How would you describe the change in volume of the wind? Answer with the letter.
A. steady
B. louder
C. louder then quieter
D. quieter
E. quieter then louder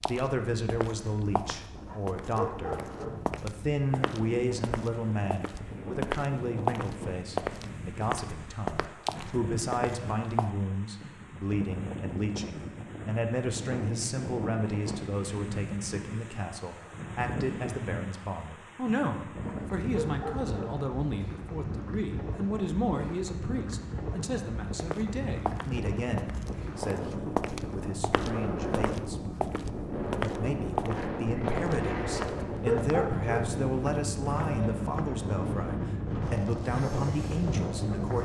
B.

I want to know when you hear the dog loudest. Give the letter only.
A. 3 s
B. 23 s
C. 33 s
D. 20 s
C.